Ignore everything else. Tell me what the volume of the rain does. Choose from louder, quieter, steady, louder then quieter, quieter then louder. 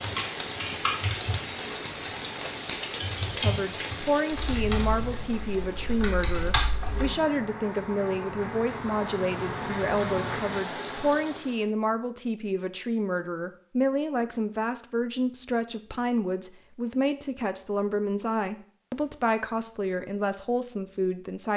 quieter then louder.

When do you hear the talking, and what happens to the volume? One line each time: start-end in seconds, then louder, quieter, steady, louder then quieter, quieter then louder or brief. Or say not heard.
3.4-21.5 steady.